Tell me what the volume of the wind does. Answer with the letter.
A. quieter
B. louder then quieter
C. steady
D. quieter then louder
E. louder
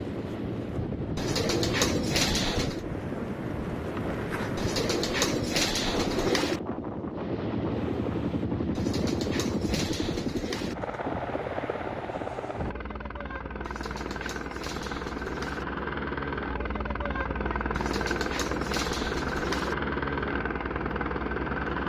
A.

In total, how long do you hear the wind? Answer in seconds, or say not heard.
13 s.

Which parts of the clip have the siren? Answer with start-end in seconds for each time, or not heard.
not heard.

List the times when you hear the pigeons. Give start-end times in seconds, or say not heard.
1.1-2.9, 4.5-6.6, 8.8-10.8, 13.6-15.7, 17.8-19.8.